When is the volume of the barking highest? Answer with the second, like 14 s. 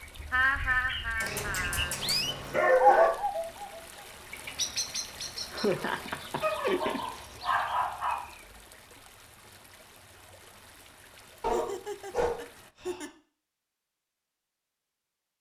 3 s.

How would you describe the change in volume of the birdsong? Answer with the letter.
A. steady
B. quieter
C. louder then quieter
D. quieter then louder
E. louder
C.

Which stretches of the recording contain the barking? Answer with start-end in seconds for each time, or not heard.
1.2-3.1, 6.3-8.2, 11.4-13.1.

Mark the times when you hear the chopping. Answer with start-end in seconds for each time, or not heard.
not heard.